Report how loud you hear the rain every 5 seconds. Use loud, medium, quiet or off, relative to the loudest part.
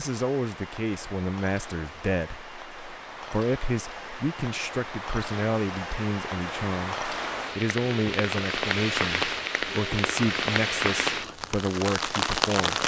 quiet, loud, loud.